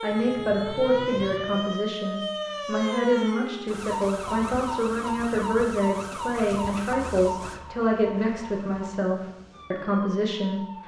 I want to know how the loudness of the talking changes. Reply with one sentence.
The loudness of the talking stays about the same.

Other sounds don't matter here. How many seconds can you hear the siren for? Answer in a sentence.
The siren can be heard for 11 seconds in total.